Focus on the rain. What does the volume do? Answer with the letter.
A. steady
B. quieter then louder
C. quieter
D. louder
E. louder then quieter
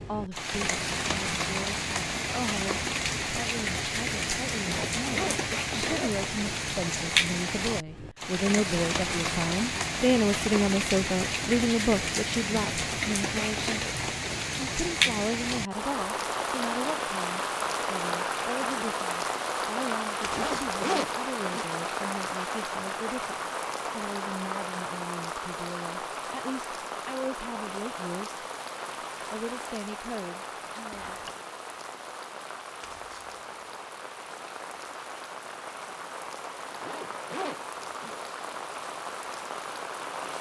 C.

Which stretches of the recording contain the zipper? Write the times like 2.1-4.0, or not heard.
4.5-6.2, 20.2-21.6, 36.6-38.2.